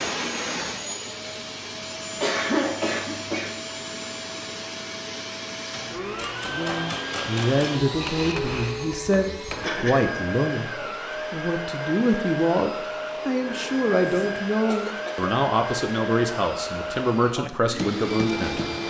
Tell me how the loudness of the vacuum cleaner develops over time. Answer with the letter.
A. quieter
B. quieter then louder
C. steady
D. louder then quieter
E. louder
C.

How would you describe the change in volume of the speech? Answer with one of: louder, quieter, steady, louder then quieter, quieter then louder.
steady.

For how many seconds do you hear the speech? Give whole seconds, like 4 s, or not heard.
12 s.